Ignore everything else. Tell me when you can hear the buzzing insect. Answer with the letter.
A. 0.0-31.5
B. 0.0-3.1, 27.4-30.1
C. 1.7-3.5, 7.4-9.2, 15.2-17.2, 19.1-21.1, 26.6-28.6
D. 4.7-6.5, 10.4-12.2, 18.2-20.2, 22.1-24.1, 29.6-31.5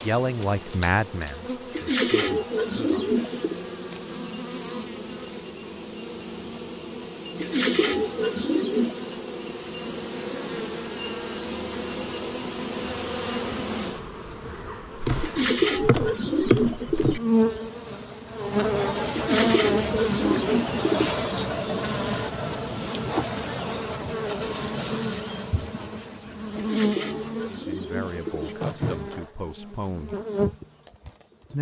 A.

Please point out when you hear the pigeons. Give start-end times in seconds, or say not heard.
1.7-3.5, 7.4-9.2, 15.2-17.2, 19.1-21.1, 26.6-28.6.